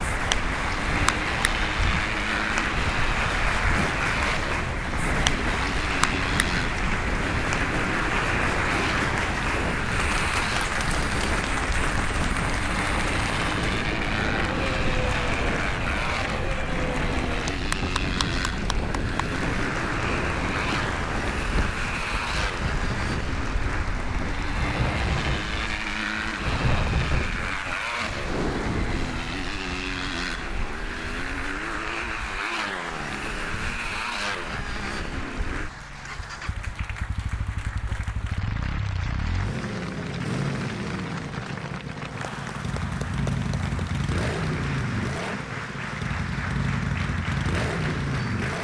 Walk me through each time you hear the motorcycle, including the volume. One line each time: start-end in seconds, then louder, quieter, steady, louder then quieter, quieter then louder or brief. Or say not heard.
0.0-48.6 steady.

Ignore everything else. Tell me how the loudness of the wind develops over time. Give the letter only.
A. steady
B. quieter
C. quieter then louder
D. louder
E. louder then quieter
A.